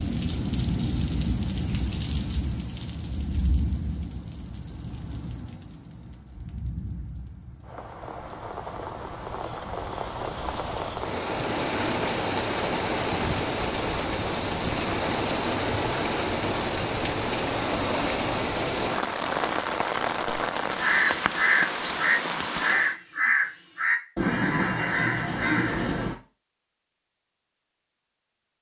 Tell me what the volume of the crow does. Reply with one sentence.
The volume of the crow stays about the same.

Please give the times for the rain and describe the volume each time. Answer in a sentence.
The rain can be heard from 0.0 to 22.9 s, getting quieter then louder.